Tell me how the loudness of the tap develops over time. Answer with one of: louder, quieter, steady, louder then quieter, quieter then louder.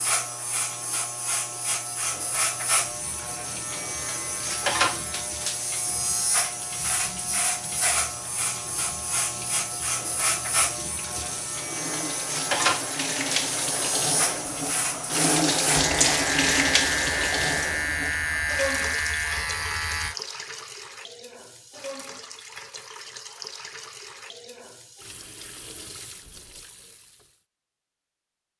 louder then quieter.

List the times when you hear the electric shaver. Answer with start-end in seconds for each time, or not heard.
0.0-20.1.